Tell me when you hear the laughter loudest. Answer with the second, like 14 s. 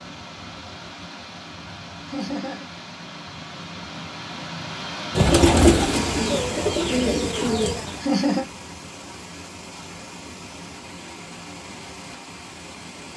8 s.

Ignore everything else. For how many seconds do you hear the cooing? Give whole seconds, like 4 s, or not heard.
3 s.